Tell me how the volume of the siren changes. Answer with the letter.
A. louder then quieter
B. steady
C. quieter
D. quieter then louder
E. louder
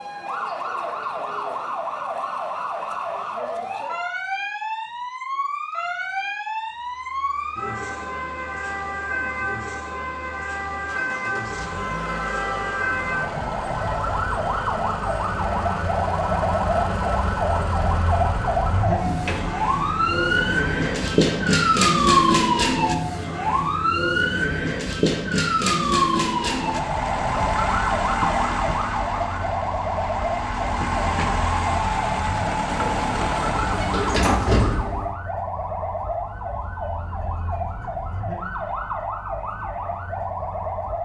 A.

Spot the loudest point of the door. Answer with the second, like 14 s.
34 s.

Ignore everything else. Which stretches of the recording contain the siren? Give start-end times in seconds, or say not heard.
0.0-41.0.